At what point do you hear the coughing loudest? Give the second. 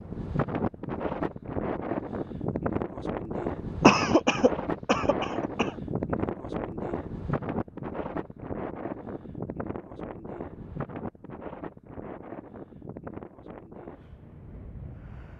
4 s.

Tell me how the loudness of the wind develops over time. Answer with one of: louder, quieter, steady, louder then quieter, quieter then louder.
quieter.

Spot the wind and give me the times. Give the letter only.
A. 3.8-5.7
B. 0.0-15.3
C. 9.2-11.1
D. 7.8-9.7
B.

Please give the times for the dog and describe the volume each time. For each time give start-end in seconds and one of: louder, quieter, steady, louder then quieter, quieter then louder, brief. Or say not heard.
not heard.